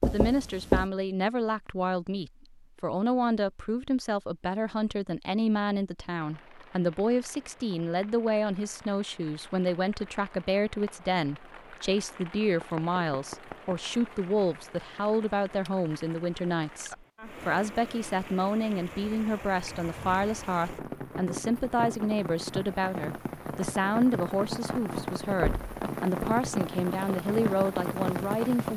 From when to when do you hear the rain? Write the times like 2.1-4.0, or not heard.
6.2-28.7.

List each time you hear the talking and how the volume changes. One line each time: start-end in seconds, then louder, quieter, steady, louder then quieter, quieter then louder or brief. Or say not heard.
0.0-28.7 steady.